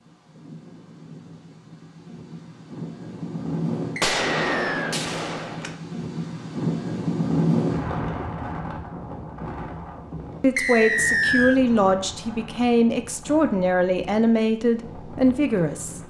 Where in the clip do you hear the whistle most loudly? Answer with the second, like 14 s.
11 s.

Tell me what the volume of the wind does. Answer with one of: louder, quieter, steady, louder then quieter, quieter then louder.
louder then quieter.